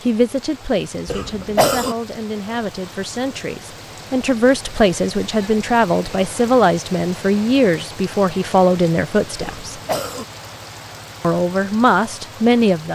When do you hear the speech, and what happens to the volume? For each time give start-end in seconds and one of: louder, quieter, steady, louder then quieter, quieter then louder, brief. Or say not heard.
0.0-9.8 louder
11.2-12.9 brief.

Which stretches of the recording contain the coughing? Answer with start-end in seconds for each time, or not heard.
1.1-1.9, 9.4-10.2.